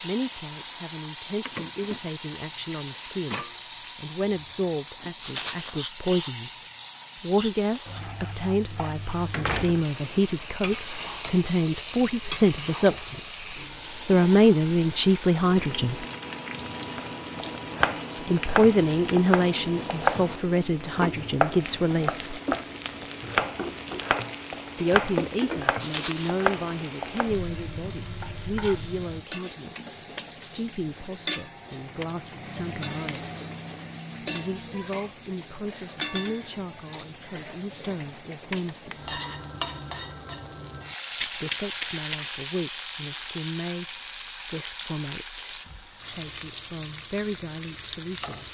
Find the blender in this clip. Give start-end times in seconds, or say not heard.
not heard.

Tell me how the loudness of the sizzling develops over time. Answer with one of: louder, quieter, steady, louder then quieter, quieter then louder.
steady.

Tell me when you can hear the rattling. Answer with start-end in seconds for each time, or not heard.
5.2-5.8, 25.8-26.4, 41.1-42.2.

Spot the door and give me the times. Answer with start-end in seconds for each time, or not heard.
9.3-9.8.